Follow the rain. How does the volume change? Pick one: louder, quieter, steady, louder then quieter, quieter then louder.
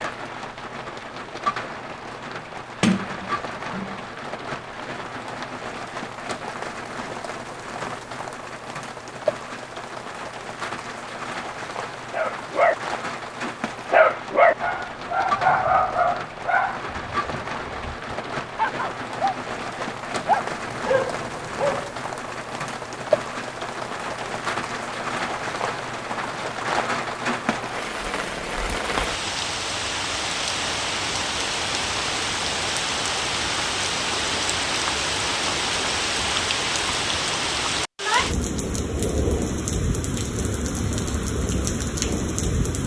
louder.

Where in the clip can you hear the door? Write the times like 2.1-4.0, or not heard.
2.8-4.0.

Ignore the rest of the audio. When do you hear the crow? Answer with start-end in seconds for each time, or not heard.
not heard.